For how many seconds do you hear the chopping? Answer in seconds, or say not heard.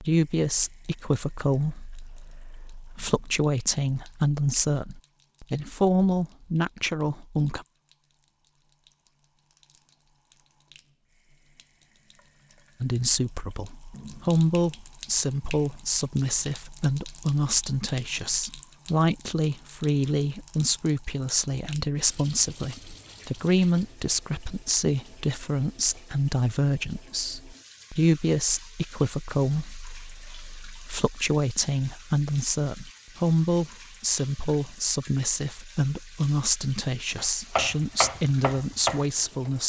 2 s.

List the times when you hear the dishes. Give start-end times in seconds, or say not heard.
not heard.